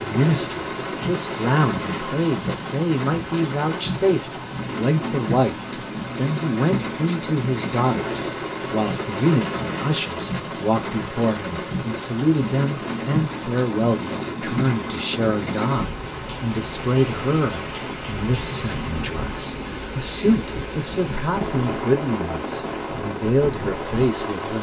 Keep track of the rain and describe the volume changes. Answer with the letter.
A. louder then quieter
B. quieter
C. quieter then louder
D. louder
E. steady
E.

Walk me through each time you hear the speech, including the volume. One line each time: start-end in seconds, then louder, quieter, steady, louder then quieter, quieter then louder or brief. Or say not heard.
0.0-24.5 steady.